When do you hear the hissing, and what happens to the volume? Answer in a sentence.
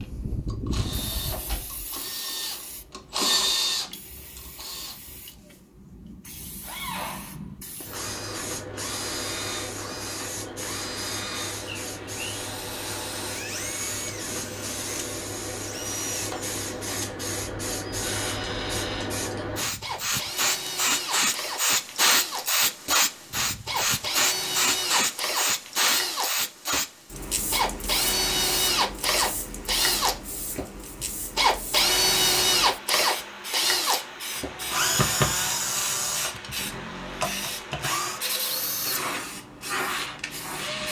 You can hear the hissing from 0.0 to 40.8 s, getting louder then quieter.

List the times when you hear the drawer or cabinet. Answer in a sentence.
You can hear the drawer or cabinet from 0.8 to 2.1 s and from 36.5 to 37.6 s.